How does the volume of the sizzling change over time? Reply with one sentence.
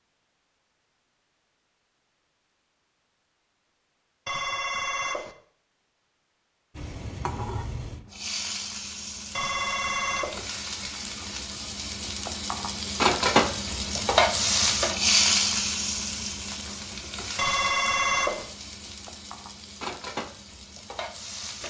The volume of the sizzling goes up, then down.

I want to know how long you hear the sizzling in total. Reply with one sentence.
You can hear the sizzling for 15 seconds altogether.